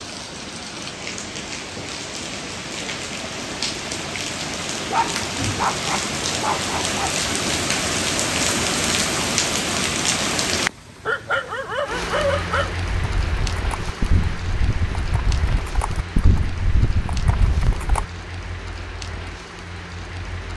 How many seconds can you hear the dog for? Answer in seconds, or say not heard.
4 s.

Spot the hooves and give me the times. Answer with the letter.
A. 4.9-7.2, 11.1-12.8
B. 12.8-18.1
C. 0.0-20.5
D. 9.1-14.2
B.